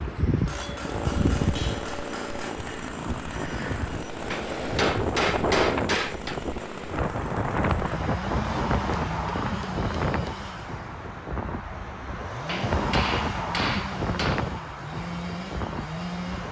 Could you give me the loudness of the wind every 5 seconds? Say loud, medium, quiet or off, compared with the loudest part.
loud, loud, loud, medium.